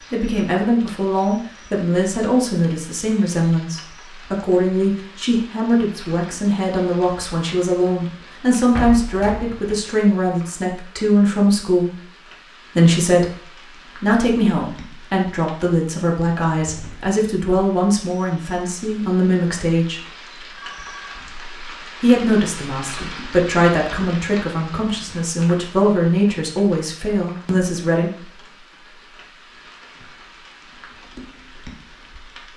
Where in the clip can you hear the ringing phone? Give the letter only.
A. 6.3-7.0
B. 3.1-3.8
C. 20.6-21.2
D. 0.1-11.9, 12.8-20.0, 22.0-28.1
C.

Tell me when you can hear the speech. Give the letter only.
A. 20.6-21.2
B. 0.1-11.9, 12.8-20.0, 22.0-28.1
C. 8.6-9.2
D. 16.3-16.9
B.